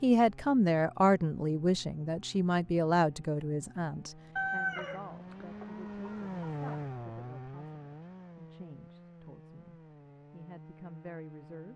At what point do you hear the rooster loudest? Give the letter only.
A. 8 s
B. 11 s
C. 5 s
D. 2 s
C.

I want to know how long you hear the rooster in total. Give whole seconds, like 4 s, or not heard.
2 s.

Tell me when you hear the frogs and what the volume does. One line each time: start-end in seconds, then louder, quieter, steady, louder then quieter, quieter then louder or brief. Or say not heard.
not heard.